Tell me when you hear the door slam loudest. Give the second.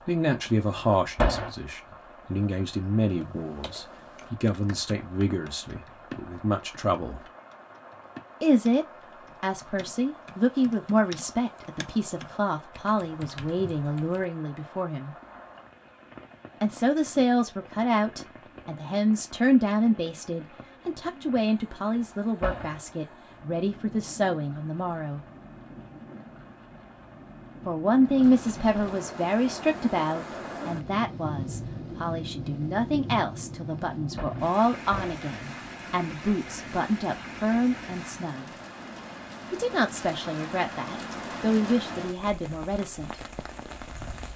1 s.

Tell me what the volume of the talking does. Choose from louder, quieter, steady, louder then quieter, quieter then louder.
steady.